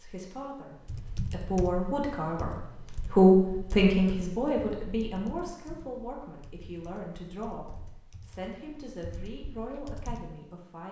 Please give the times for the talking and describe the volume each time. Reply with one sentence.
The talking can be heard from 0.0 to 10.8 s, getting louder then quieter.